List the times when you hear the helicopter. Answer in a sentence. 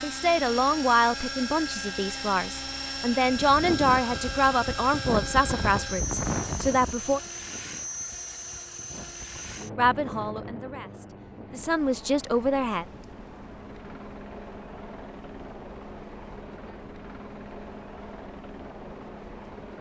You can hear the helicopter from 0.0 to 19.7 s.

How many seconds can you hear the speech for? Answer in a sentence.
You can hear the speech for 10 seconds altogether.